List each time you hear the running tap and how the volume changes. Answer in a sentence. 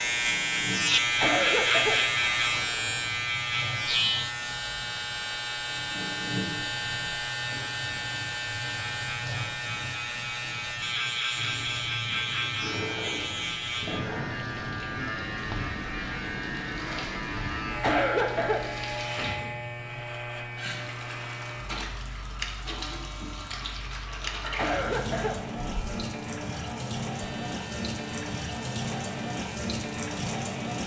The running tap can be heard from 0.0 to 30.8 s, getting louder.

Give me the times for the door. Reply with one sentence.
The door can't be heard in this clip.